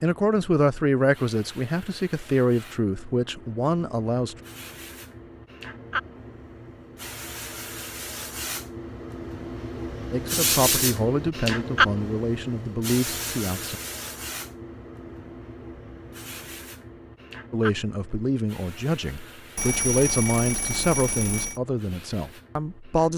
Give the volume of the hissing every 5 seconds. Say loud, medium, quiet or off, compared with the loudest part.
quiet, medium, loud, quiet, quiet.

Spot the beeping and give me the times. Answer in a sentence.
You can hear the beeping from 19.6 to 21.6 s.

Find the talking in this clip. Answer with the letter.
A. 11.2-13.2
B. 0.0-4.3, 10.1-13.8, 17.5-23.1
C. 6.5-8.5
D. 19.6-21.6
B.